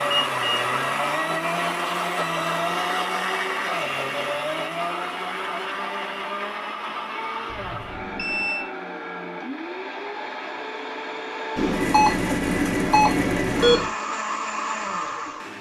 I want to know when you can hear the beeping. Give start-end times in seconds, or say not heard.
0.1-0.8, 7.5-8.7, 11.6-13.9.